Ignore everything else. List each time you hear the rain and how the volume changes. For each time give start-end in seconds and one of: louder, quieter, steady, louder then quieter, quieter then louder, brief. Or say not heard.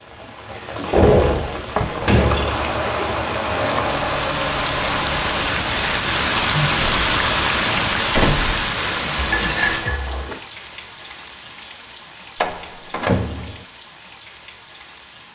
0.0-15.3 louder then quieter.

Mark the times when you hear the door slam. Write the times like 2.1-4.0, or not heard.
0.9-2.7, 8.1-8.7, 12.4-13.6.